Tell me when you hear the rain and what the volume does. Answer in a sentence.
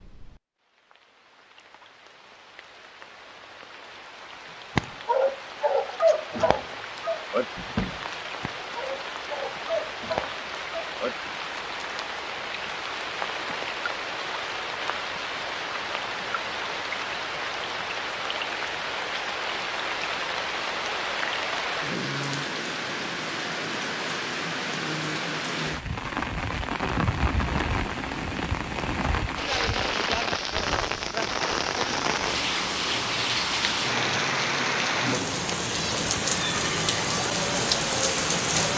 The rain can be heard from 0.0 to 38.7 s, getting louder.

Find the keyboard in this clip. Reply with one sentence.
You can't hear the keyboard here.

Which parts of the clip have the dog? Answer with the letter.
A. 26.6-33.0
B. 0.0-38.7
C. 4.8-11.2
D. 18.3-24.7
C.